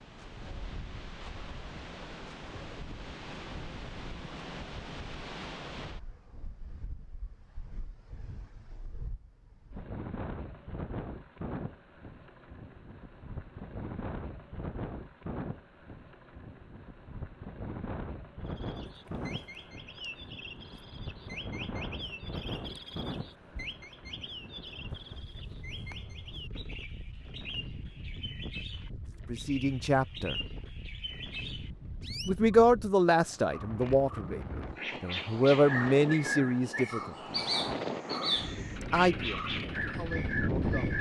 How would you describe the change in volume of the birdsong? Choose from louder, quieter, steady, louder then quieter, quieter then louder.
louder.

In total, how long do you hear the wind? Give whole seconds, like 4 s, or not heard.
41 s.